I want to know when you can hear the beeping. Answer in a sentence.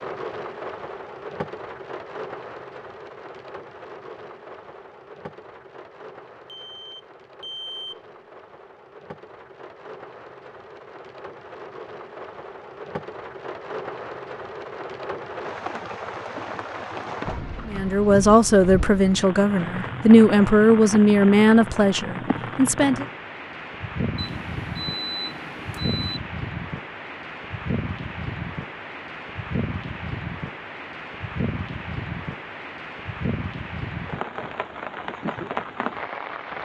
The beeping can be heard from 6.5 to 8.0 s and from 24.1 to 26.2 s.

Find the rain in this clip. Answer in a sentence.
You can hear the rain from 0.0 to 36.6 s.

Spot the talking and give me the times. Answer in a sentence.
You can hear the talking from 17.6 to 23.1 s.